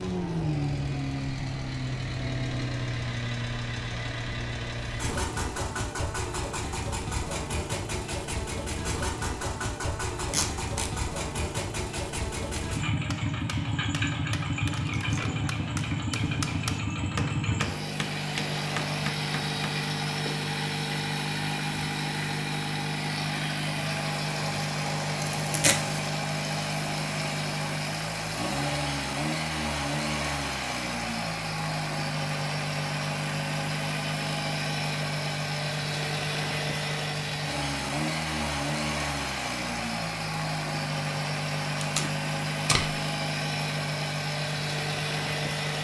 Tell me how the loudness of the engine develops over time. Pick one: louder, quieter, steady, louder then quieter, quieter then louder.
steady.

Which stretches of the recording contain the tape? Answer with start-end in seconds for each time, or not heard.
10.3-10.9, 25.4-26.0, 41.8-42.9.